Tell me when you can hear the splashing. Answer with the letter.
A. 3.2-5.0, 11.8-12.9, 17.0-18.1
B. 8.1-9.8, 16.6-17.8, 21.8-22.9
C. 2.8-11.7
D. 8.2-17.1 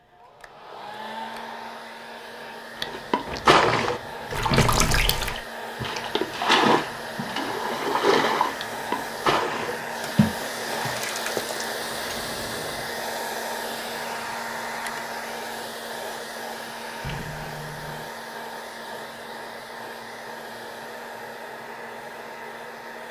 C.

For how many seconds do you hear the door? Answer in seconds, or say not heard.
4 s.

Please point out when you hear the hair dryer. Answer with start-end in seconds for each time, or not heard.
0.0-23.0.